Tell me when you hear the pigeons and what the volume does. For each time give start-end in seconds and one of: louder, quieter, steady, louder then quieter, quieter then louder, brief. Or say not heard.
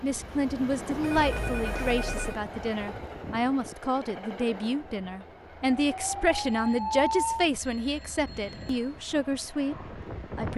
not heard.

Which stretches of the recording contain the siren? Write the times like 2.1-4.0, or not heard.
5.7-7.5.